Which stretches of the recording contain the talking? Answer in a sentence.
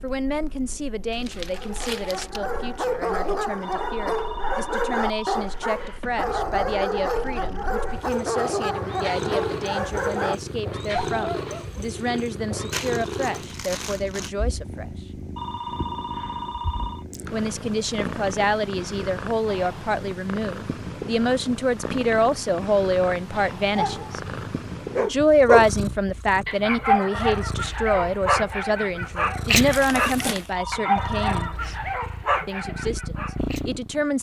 The talking can be heard from 0.0 to 14.8 s, from 17.3 to 24.2 s, from 25.0 to 31.8 s and from 32.5 to 34.1 s.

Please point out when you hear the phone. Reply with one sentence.
You can hear the phone from 3.6 to 6.1 s, from 15.3 to 17.1 s and from 30.6 to 31.6 s.